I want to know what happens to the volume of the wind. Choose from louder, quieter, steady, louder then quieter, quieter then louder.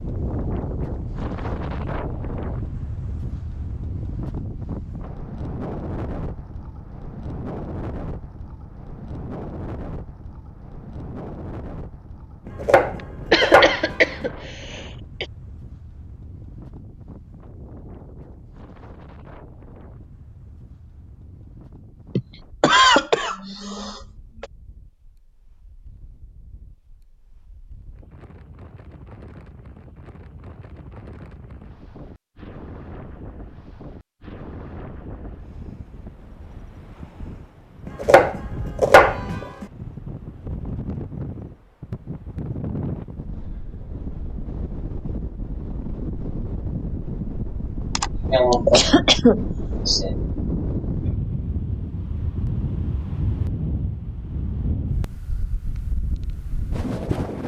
quieter then louder.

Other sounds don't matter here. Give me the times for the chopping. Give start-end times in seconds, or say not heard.
12.4-14.2, 37.9-39.6.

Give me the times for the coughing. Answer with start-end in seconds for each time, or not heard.
13.3-15.2, 22.1-24.4, 48.0-50.1.